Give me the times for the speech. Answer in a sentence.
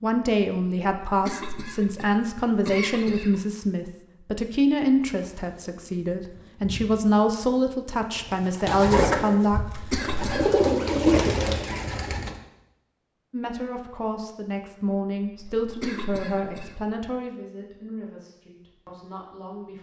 You can hear the speech from 0.0 to 9.8 s and from 13.3 to 19.7 s.